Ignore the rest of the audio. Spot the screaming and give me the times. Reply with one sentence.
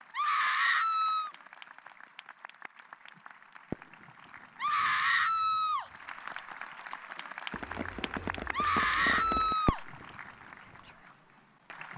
The screaming can be heard from 0.1 to 1.3 s, from 4.5 to 5.9 s and from 8.5 to 9.8 s.